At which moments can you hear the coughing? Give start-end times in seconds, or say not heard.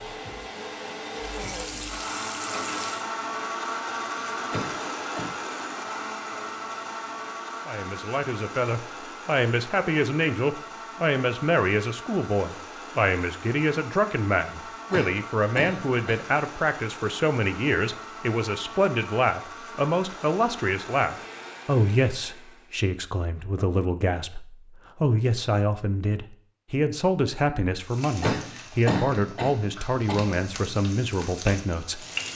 4.5-5.3, 14.9-16.2, 28.2-30.4.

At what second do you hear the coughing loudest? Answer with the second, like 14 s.
29 s.